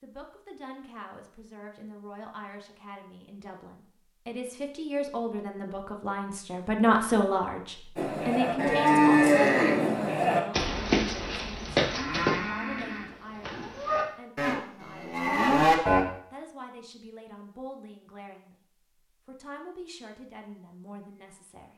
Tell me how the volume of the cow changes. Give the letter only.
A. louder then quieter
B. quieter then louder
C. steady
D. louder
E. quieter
B.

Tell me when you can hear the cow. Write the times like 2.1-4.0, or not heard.
8.0-16.1.